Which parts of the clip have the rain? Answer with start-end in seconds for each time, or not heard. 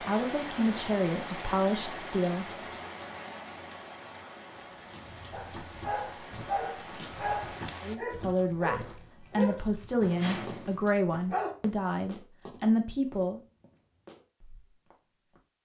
0.0-8.0.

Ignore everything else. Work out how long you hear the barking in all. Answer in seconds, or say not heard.
6 s.